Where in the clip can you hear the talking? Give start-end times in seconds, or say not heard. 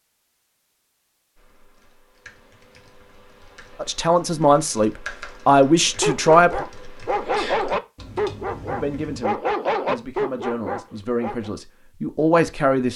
3.8-6.7, 8.7-12.9.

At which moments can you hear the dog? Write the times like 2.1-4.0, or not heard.
6.0-11.5.